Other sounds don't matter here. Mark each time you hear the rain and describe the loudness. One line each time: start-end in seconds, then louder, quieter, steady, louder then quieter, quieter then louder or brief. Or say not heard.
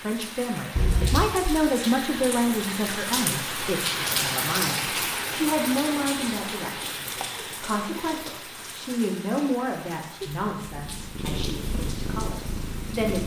0.0-13.2 louder then quieter.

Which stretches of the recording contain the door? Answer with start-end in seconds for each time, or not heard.
0.8-1.6.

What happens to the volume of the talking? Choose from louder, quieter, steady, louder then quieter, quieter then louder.
quieter.